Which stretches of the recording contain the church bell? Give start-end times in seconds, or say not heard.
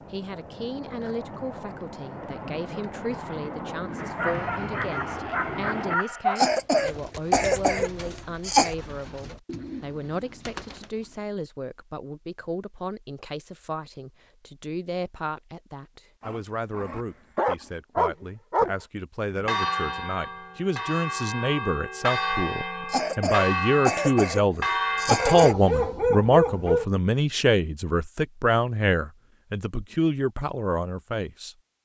19.3-25.5.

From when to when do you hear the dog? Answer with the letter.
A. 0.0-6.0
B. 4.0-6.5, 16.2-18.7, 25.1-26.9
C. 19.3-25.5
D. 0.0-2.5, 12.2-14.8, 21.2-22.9
B.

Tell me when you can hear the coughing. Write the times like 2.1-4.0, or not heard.
6.3-8.8, 22.9-25.6.